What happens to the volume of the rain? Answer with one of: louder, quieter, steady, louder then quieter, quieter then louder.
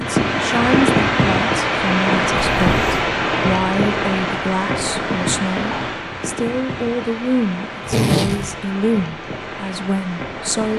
quieter.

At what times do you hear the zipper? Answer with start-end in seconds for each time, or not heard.
2.4-3.1, 7.8-8.6.